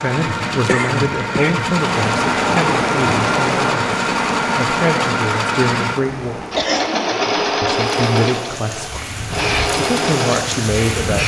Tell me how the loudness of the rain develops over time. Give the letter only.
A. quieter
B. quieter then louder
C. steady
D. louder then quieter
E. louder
B.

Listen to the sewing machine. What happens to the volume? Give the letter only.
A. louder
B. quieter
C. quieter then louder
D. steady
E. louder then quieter
D.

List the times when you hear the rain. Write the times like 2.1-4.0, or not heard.
1.7-11.2.